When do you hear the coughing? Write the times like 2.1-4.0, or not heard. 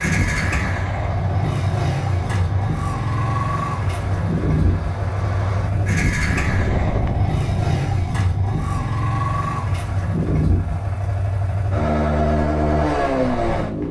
not heard.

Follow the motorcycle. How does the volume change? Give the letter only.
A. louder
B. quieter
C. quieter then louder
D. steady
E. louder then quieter
D.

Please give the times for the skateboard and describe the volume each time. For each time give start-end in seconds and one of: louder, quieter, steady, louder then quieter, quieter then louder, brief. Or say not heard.
not heard.